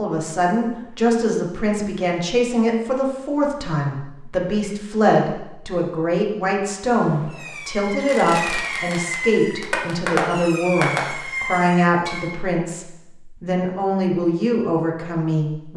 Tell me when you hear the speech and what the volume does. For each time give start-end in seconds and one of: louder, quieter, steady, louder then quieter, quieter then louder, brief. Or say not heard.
0.0-15.7 steady.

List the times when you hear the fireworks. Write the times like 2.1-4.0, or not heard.
7.0-12.3.